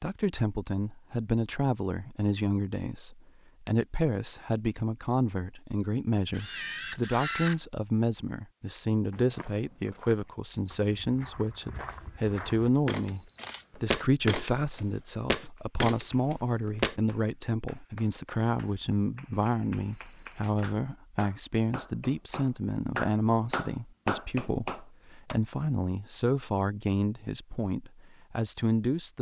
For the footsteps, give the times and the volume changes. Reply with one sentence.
You can hear the footsteps from 9.1 to 16.9 s, getting louder.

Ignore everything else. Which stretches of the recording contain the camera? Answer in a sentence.
The camera can be heard from 6.3 to 7.6 s, from 13.0 to 13.7 s and from 19.9 to 20.9 s.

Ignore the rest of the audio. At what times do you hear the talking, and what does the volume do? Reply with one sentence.
You can hear the talking from 0.0 to 29.1 s, at a steady volume.